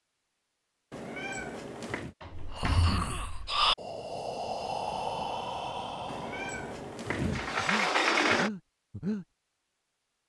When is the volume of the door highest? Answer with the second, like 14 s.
8 s.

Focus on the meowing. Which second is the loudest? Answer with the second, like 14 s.
7 s.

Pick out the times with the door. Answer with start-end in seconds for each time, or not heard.
2.2-3.5, 7.3-8.5.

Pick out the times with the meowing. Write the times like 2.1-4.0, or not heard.
0.9-2.1, 6.0-7.8.